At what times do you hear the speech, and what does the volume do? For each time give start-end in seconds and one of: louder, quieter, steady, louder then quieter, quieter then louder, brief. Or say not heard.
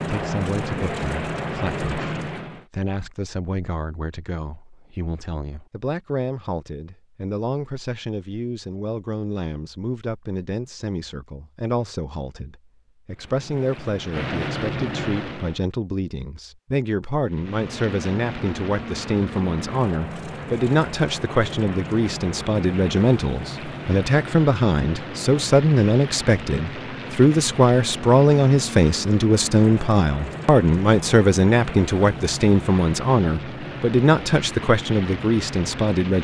0.1-36.1 louder.